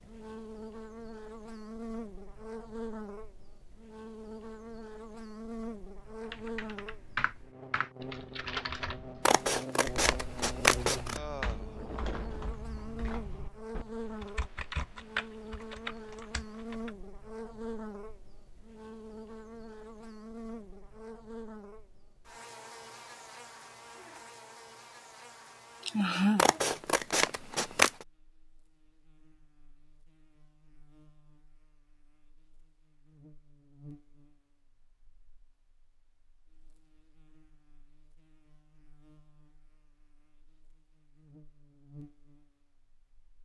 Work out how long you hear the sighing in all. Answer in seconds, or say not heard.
2 s.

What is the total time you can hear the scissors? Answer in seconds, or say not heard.
4 s.